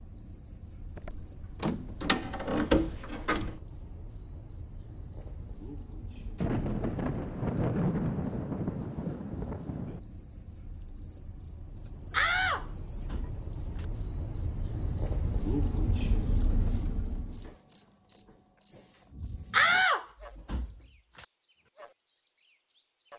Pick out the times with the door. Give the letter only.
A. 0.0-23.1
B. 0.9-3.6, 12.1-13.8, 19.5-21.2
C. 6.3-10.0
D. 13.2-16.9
B.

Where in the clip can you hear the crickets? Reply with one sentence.
You can hear the crickets from 0.0 to 23.1 s.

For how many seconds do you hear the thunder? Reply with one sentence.
You can hear the thunder for 4 seconds altogether.